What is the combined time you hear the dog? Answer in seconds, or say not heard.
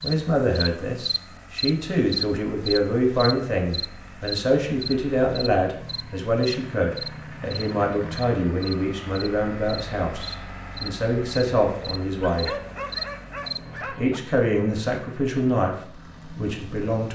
2 s.